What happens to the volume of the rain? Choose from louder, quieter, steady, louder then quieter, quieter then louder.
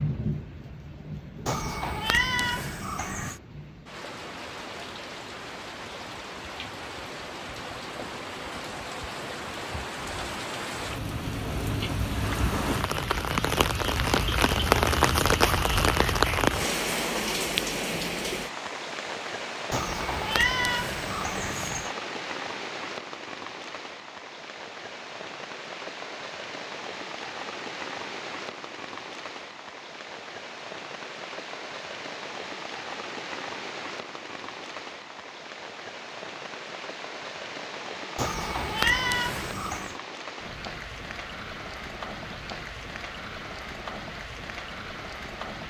louder then quieter.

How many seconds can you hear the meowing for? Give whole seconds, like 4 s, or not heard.
6 s.